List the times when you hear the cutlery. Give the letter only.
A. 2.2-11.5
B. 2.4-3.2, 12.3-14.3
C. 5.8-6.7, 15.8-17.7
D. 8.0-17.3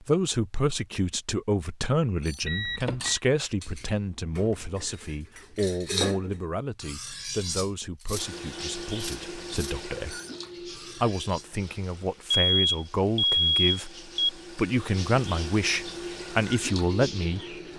A.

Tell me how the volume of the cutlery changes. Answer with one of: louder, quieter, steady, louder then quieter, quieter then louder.
louder then quieter.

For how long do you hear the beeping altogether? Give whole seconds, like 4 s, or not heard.
3 s.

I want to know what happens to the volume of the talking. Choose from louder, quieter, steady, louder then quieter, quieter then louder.
quieter then louder.